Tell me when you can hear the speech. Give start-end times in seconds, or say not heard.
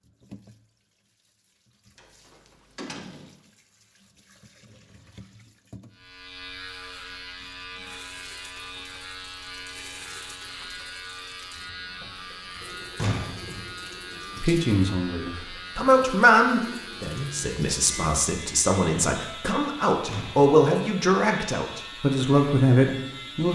14.3-23.5.